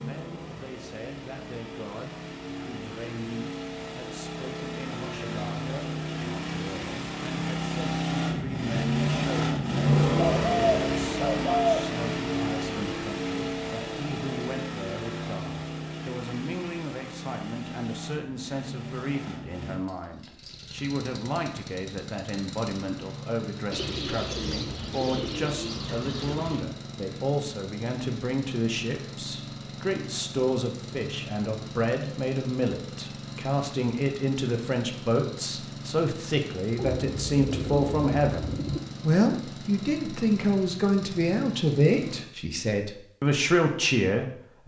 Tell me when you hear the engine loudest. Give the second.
10 s.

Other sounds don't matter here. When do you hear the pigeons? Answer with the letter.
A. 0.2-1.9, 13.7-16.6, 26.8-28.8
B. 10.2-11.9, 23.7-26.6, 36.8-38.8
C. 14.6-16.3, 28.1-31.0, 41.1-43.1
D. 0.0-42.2
B.